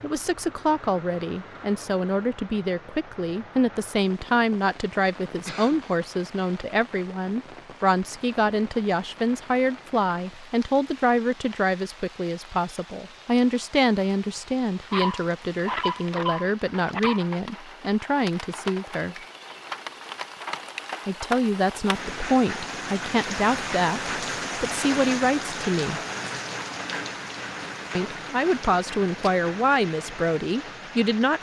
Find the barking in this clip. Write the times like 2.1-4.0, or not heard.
14.9-17.2.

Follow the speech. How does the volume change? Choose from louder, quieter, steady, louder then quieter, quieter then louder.
steady.